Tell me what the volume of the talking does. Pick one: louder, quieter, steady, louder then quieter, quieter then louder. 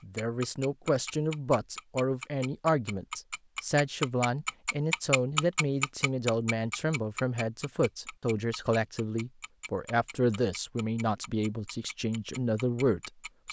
steady.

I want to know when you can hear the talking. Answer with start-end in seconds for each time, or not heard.
0.0-13.4.